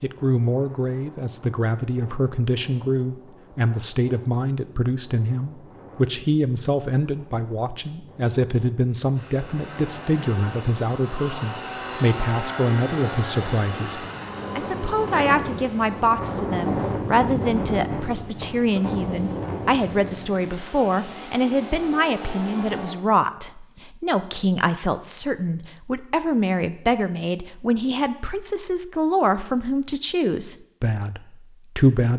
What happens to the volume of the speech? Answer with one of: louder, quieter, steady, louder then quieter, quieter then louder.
steady.